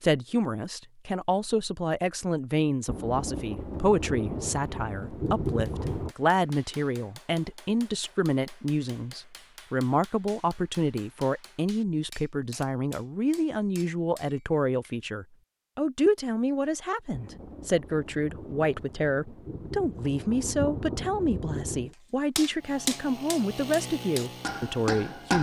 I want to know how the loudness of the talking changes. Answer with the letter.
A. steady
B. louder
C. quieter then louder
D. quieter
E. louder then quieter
A.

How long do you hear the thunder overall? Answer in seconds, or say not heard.
8 s.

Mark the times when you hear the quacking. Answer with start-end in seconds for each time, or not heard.
not heard.